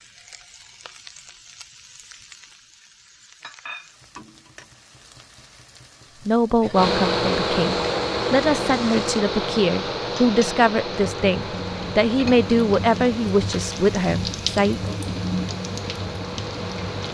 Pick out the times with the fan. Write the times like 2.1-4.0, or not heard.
6.7-17.0.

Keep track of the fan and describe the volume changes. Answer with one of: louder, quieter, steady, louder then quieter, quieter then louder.
quieter.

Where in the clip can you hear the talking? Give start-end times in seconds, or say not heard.
6.2-14.9.